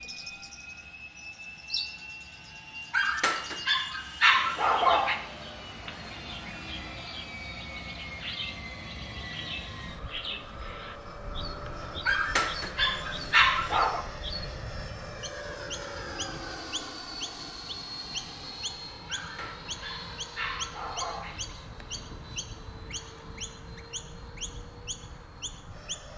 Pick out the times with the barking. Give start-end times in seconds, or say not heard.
2.9-5.2, 12.1-14.1, 19.1-21.4.